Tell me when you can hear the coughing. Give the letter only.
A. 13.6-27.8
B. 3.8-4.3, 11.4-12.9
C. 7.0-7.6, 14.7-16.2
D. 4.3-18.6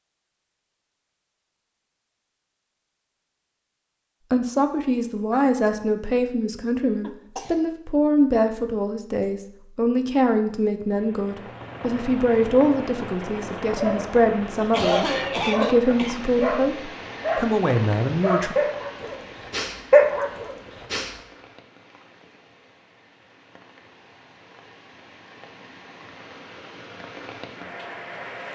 C.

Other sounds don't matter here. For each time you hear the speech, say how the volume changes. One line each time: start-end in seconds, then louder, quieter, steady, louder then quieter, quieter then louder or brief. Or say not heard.
4.3-18.6 steady.